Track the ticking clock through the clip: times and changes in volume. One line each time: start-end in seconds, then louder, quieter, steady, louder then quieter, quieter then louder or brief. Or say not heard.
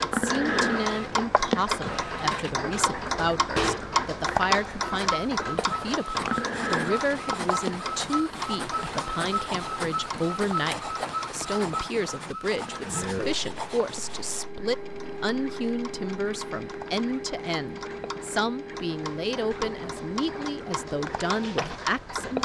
0.0-22.4 quieter then louder.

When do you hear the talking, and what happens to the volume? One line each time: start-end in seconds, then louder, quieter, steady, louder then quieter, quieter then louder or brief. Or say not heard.
0.0-22.4 steady.